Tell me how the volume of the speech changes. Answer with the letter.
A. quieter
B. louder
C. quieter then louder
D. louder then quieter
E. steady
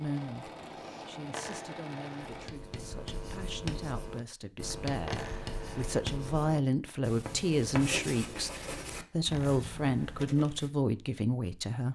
B.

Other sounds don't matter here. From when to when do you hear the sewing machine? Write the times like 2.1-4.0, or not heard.
0.0-2.5.